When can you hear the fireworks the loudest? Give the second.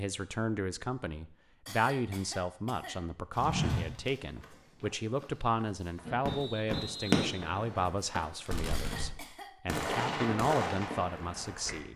7 s.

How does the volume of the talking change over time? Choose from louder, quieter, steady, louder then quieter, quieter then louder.
steady.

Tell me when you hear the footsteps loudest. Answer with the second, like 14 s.
4 s.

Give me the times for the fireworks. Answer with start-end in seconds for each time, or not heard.
6.0-7.5, 8.4-11.8.